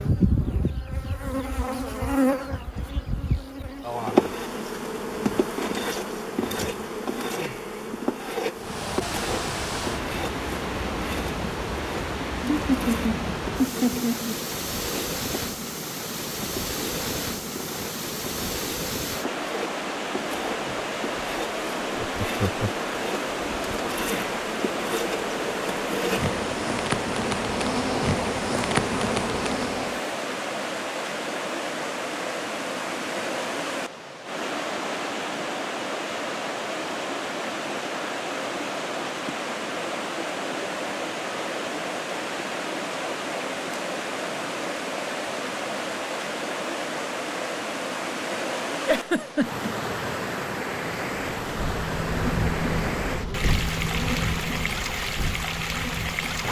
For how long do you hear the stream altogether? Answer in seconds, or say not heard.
48 s.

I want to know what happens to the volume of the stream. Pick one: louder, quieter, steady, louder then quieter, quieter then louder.
steady.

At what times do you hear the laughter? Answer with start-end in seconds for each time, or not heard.
12.5-14.4, 21.9-22.7, 48.9-49.7.